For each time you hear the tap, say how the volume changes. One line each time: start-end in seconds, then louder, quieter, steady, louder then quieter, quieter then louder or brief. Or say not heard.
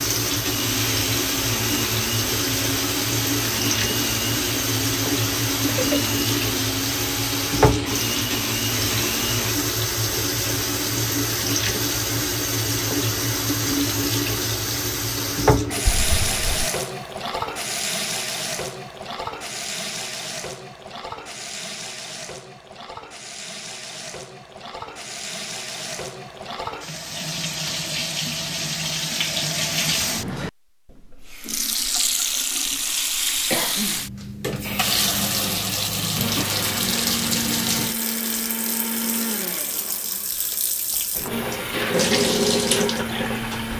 0.0-43.7 quieter then louder.